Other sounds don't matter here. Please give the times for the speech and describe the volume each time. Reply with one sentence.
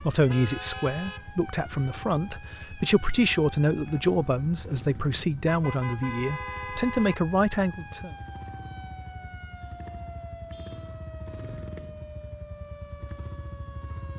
You can hear the speech from 0.0 to 8.2 s, at a steady volume.